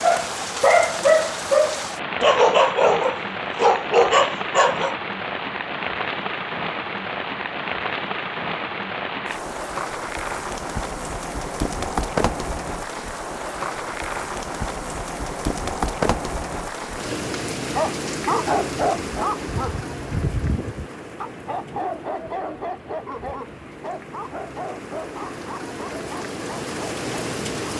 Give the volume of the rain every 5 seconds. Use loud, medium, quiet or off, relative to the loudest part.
loud, loud, loud, loud, medium, loud.